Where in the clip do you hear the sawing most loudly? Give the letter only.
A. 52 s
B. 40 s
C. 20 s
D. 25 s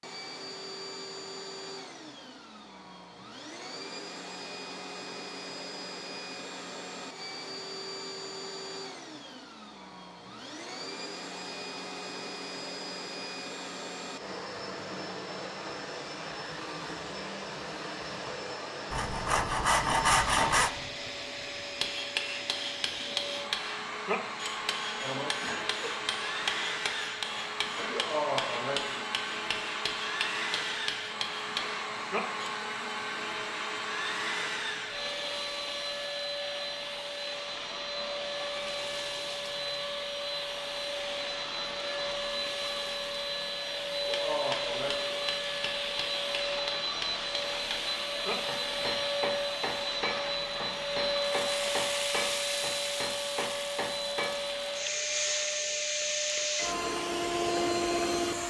C.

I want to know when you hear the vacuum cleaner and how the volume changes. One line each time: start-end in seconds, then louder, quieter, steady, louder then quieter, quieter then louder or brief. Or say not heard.
0.0-58.4 louder.